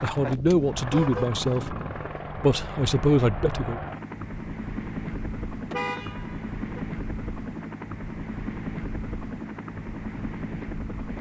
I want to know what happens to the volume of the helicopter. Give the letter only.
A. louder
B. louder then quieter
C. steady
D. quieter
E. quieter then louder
C.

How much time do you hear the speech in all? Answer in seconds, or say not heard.
3 s.